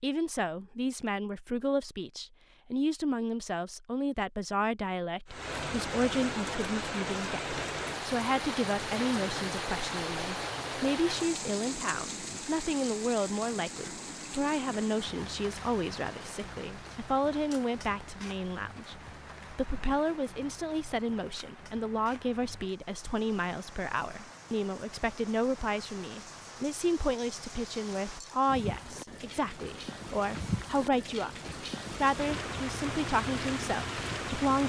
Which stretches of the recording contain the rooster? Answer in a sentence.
You can't hear the rooster here.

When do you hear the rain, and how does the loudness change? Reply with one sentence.
The rain can be heard from 5.2 to 34.6 s, getting quieter then louder.